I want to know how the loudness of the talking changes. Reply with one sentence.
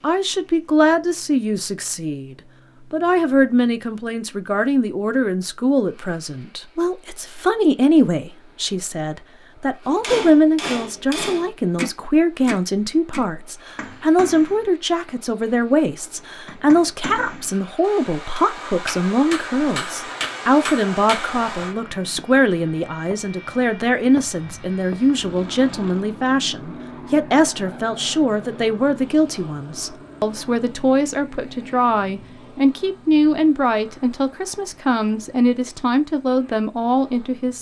The loudness of the talking stays about the same.